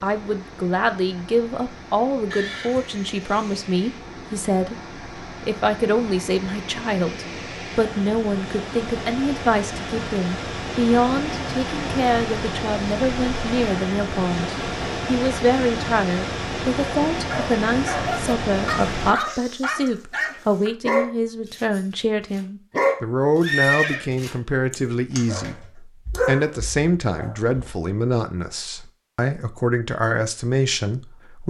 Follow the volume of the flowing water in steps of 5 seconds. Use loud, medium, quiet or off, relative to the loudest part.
quiet, medium, loud, loud, off, off, off.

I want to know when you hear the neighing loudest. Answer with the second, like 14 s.
24 s.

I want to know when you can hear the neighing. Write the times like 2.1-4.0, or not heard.
2.3-3.6, 23.4-24.1.